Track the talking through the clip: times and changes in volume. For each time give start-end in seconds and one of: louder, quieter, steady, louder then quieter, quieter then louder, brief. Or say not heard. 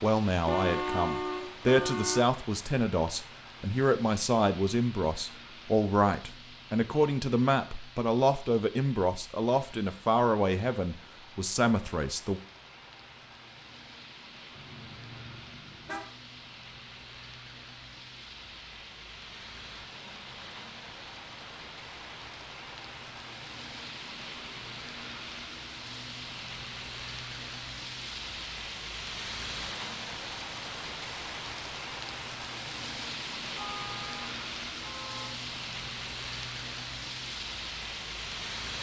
0.0-12.4 steady.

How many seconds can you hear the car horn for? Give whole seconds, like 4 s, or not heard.
5 s.